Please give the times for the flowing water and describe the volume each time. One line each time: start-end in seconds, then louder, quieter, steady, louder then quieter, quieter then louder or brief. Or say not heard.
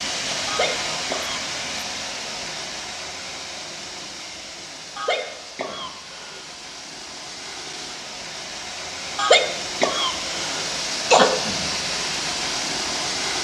0.0-13.3 quieter then louder.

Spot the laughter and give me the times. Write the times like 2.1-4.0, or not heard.
0.5-1.4, 5.0-6.5, 9.2-11.3.